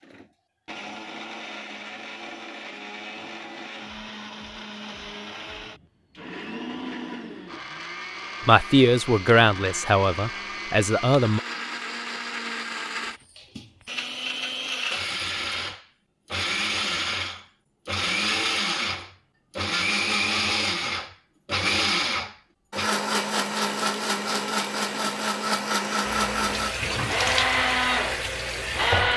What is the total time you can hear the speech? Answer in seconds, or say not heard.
3 s.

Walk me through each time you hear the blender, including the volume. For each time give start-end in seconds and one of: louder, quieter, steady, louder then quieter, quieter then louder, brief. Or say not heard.
0.0-29.1 louder.